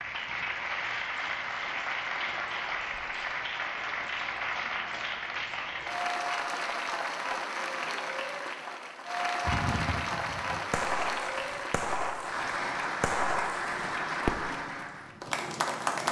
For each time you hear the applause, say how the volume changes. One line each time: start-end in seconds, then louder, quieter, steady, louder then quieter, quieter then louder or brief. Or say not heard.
0.0-16.0 steady.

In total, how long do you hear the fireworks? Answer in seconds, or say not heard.
5 s.